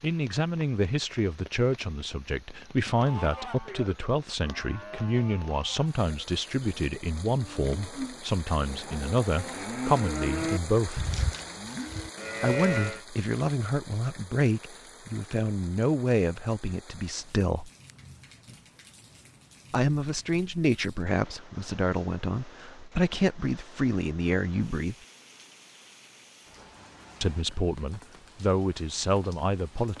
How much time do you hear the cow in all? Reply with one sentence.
The cow can be heard for 10 seconds in total.